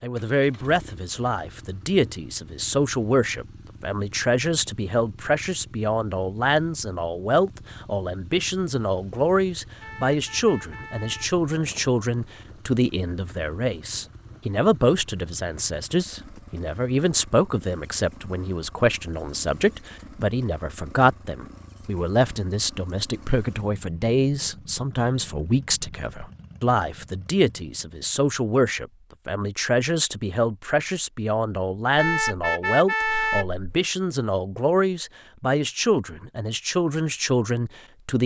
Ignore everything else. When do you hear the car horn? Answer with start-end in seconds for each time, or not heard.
9.8-11.3, 31.9-33.6.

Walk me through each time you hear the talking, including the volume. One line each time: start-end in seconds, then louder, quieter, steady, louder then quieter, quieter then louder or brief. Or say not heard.
0.0-38.2 steady.